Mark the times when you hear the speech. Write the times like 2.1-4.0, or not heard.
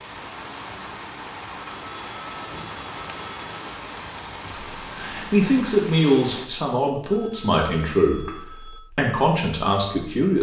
4.8-10.3.